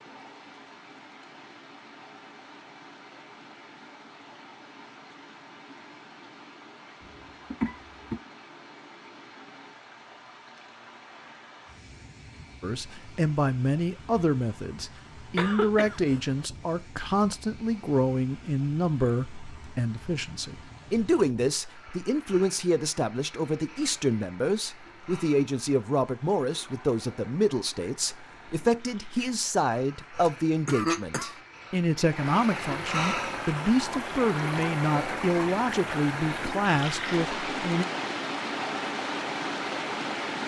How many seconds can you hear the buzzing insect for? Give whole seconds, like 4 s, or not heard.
not heard.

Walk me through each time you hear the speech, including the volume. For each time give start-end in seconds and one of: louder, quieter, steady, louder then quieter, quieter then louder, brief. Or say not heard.
12.6-37.9 steady.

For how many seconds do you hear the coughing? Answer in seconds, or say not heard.
3 s.